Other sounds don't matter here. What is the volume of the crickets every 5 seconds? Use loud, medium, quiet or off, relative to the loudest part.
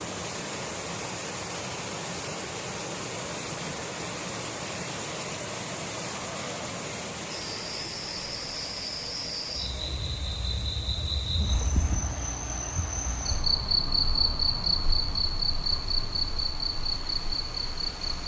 off, medium, loud, loud.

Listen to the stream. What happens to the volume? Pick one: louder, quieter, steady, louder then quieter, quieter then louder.
quieter.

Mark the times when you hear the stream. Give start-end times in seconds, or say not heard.
0.0-18.2.